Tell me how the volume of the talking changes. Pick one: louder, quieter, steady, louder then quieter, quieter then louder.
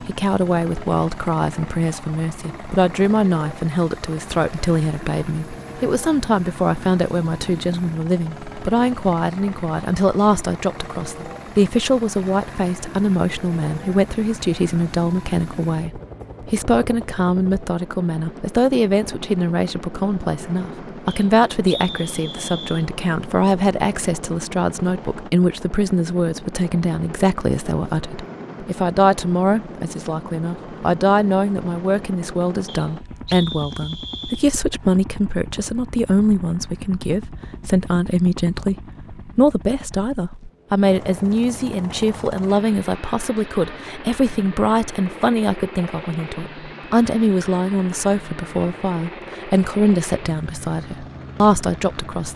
steady.